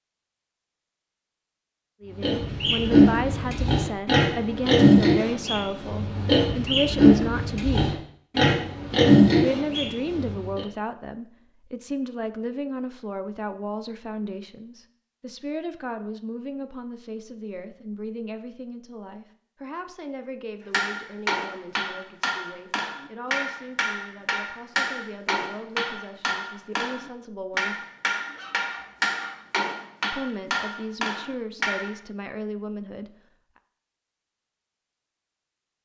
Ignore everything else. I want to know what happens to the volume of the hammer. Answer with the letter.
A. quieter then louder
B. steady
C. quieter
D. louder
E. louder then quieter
B.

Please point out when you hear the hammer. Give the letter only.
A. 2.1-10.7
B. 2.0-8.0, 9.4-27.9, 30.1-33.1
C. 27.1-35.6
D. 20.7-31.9
D.